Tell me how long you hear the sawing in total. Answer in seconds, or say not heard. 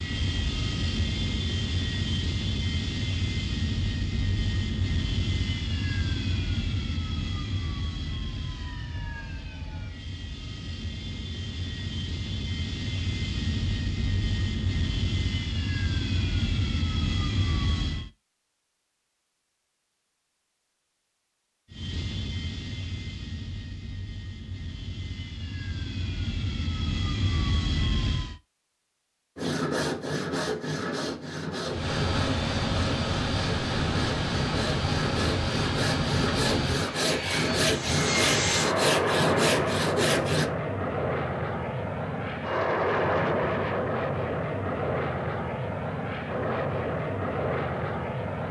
11 s.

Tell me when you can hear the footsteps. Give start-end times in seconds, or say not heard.
not heard.